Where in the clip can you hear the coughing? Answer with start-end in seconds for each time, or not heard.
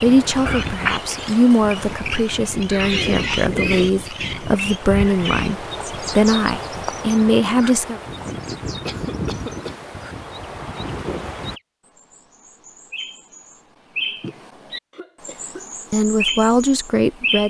2.6-3.2, 8.8-9.8, 14.9-15.7.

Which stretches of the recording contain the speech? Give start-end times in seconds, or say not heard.
0.0-8.0, 15.9-17.4.